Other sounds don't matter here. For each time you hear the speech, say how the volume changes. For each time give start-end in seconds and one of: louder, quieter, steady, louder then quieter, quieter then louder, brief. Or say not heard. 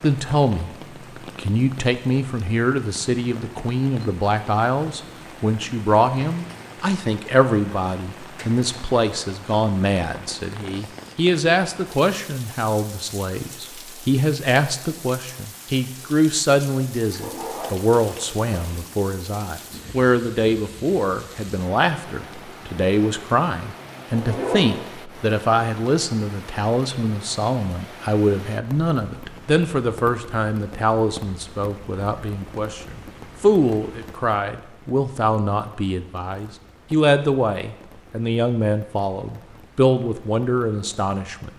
0.0-0.8 brief
1.4-41.5 steady.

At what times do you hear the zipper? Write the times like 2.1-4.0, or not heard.
17.1-18.8, 24.1-24.8.